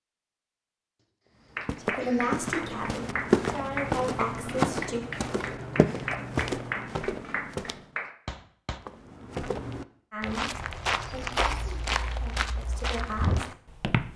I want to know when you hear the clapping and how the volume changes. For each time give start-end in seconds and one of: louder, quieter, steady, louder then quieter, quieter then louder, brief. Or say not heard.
1.6-8.8 steady.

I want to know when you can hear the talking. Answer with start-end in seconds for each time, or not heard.
1.8-5.0, 10.1-13.5.